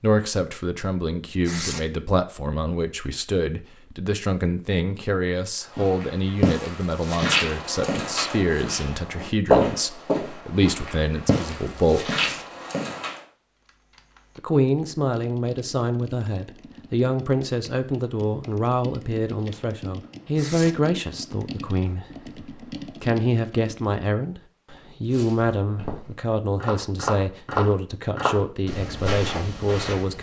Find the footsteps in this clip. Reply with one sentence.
You can hear the footsteps from 5.7 to 13.2 s and from 25.1 to 30.1 s.